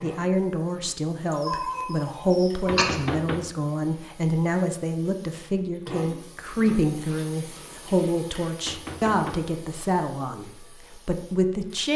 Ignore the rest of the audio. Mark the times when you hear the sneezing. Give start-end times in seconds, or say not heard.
1.3-3.0.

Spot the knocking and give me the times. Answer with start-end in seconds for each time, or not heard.
2.6-3.5, 8.7-9.5.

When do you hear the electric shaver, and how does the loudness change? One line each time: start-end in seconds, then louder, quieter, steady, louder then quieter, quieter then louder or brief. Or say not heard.
not heard.